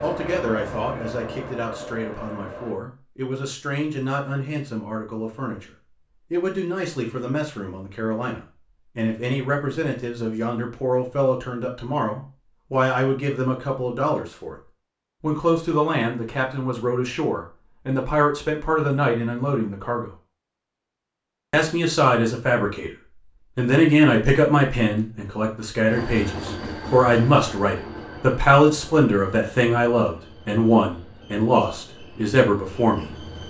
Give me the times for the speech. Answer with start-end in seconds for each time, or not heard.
0.0-5.7, 6.3-14.6, 15.2-20.1, 21.5-22.9, 23.6-33.1.